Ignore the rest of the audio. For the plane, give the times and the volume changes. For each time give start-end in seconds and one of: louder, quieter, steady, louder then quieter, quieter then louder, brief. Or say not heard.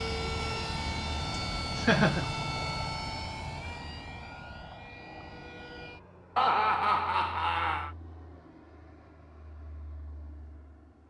0.0-11.0 quieter.